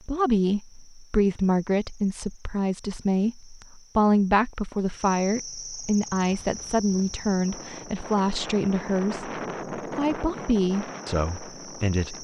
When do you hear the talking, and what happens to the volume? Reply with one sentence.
You can hear the talking from 0.1 to 12.2 s, at a steady volume.